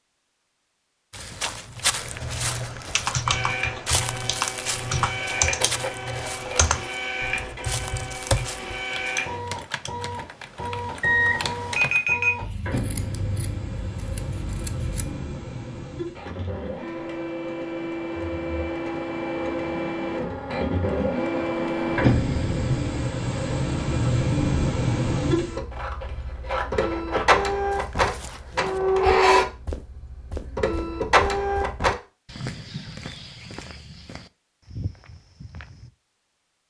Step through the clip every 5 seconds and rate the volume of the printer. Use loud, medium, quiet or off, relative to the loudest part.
medium, medium, medium, medium, loud, loud, loud, off.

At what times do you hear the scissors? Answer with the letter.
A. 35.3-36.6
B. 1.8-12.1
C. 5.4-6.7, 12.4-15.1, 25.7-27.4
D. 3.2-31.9
C.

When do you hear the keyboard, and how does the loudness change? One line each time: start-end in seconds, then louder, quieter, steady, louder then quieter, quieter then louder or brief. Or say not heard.
1.8-12.1 quieter.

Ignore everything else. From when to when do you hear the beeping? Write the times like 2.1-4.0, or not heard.
11.0-12.3.